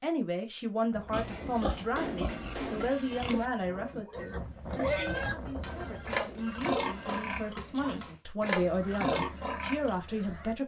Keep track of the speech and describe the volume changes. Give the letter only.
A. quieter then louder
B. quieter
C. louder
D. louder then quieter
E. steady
A.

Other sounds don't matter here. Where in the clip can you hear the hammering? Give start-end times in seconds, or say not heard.
1.2-3.0, 5.6-8.2.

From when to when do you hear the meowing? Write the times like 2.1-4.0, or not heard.
not heard.